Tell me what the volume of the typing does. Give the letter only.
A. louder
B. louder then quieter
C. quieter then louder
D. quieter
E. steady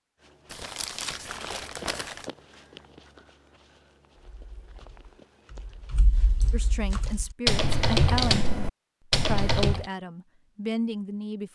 A.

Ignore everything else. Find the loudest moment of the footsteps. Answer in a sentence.
The volume of the footsteps peaks at 2 seconds.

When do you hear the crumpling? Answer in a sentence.
You can hear the crumpling from 0.5 to 2.3 s and from 6.1 to 7.2 s.